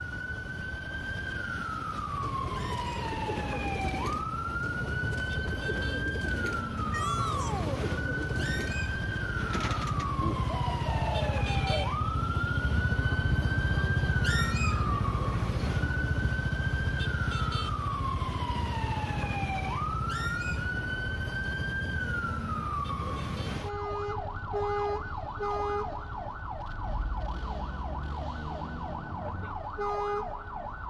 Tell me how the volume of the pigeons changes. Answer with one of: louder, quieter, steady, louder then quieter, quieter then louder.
steady.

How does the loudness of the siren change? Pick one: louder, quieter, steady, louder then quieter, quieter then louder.
steady.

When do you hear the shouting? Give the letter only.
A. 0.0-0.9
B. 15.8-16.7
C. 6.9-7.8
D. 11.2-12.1
C.